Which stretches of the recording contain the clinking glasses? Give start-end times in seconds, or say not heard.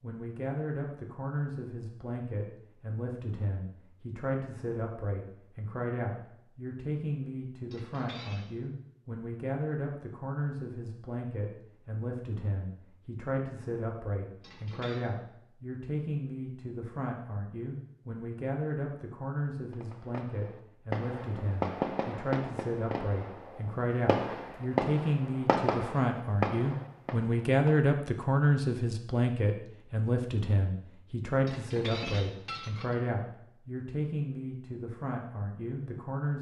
7.7-8.4, 14.4-15.1, 31.4-33.0.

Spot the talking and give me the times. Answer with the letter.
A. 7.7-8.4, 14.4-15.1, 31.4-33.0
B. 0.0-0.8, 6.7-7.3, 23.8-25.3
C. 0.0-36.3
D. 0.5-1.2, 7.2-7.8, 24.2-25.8
C.